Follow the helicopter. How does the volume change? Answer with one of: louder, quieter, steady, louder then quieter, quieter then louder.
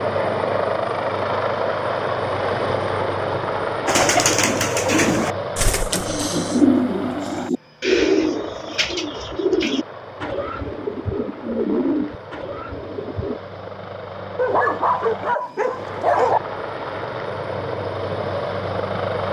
quieter then louder.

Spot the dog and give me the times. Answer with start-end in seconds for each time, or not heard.
14.3-16.4.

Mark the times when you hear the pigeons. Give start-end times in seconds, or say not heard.
3.9-13.4.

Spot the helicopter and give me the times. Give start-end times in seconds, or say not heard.
0.0-19.2.